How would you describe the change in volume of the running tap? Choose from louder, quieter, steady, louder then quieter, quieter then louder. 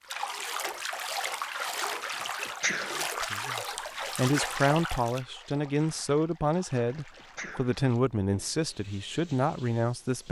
quieter.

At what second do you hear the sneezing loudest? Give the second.
3 s.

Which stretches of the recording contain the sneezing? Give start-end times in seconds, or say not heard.
2.1-3.0, 6.8-7.8.